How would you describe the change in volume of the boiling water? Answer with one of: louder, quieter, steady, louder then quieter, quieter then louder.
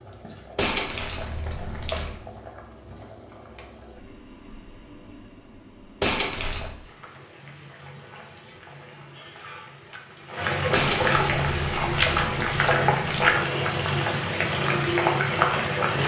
louder.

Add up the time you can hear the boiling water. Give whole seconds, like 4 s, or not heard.
16 s.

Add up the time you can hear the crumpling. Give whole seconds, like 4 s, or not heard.
5 s.